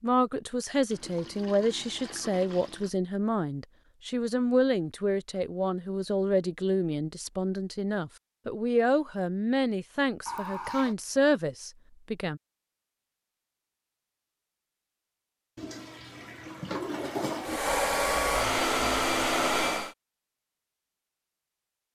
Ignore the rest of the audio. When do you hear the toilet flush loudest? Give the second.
17 s.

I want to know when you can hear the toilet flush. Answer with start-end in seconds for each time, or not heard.
0.9-2.9, 10.2-10.9, 15.6-17.6.